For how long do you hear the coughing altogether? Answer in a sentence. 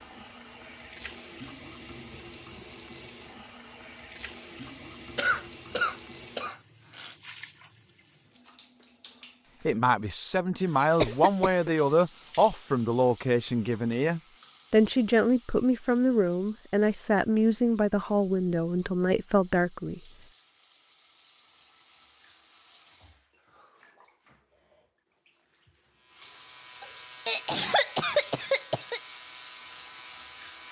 You can hear the coughing for 5 seconds altogether.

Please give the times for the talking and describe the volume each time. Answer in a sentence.
The talking can be heard from 9.7 to 20.0 s, at a steady volume.